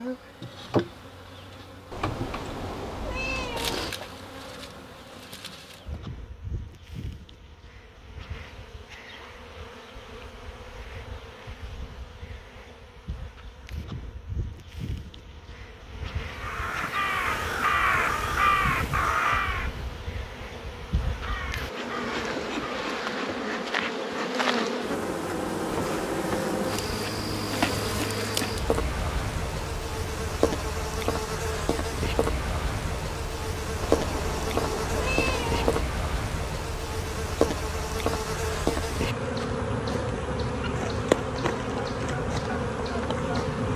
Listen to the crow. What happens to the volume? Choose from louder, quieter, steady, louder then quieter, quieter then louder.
quieter.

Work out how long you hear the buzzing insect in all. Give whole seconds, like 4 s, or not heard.
44 s.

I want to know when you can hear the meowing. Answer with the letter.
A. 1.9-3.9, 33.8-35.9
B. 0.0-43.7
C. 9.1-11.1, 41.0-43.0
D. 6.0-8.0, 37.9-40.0
A.